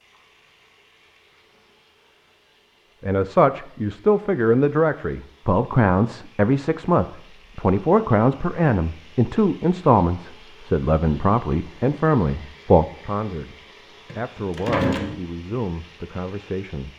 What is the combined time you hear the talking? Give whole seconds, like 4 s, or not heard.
13 s.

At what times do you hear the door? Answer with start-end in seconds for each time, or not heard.
14.1-15.2.